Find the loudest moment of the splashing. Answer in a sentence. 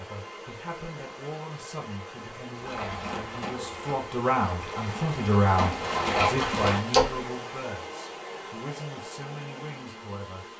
The volume of the splashing peaks at 7 seconds.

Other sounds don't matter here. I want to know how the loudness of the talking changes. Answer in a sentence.
The loudness of the talking goes up, then down.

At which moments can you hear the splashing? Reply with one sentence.
You can hear the splashing from 2.5 to 7.2 s.